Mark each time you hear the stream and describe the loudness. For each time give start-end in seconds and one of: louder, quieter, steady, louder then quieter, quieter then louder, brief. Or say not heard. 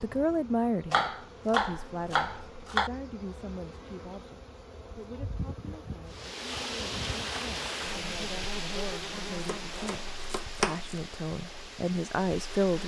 6.0-12.8 quieter.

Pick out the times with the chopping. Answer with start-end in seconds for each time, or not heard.
0.9-2.9, 9.4-10.9.